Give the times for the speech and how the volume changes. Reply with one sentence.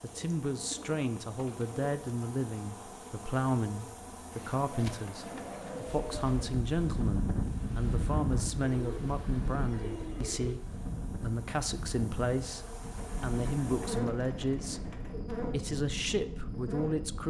You can hear the speech from 0.0 to 17.2 s, at a steady volume.